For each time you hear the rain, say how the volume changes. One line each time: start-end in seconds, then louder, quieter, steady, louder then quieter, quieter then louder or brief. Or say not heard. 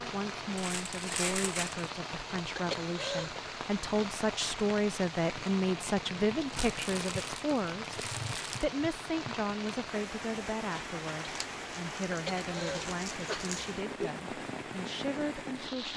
0.0-15.9 steady.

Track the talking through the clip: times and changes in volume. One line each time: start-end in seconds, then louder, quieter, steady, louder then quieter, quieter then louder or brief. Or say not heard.
0.0-15.9 louder then quieter.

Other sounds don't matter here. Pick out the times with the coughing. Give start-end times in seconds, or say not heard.
2.5-3.4, 12.1-14.1.